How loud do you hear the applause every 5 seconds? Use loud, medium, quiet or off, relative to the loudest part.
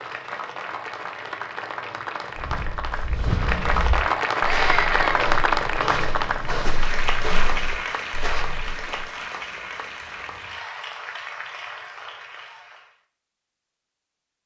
loud, loud, medium.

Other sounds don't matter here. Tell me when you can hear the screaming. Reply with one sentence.
The screaming can be heard from 4.4 to 5.2 s.